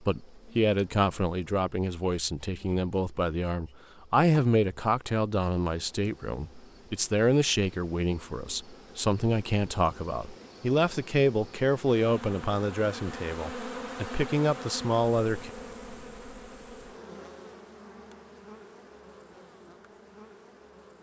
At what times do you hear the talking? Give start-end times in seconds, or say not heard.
0.1-15.5.